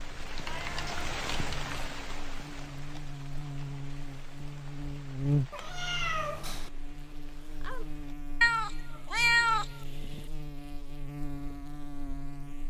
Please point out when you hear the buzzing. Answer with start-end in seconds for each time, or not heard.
0.0-12.6.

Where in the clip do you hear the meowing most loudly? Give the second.
9 s.